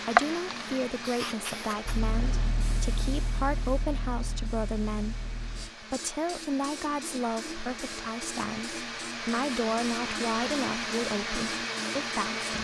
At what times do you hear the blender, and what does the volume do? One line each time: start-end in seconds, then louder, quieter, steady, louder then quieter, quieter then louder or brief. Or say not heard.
0.0-12.5 quieter then louder.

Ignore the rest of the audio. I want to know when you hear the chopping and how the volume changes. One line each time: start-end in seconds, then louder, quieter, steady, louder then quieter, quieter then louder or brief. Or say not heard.
not heard.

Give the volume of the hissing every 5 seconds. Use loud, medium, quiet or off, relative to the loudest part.
loud, medium, medium.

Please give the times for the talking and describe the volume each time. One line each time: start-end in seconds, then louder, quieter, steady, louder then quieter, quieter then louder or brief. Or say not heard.
0.1-12.5 steady.